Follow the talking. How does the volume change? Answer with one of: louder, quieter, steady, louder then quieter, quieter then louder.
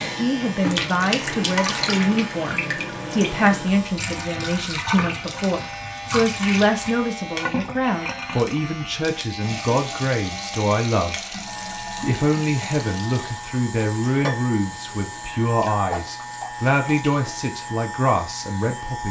steady.